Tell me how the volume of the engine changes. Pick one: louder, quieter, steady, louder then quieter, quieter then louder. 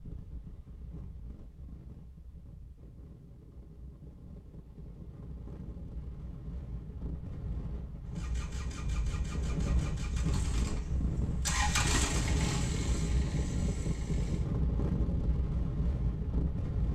louder then quieter.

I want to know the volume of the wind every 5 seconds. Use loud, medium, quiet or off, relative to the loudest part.
quiet, medium, loud, loud.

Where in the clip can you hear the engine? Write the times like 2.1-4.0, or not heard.
8.1-14.6.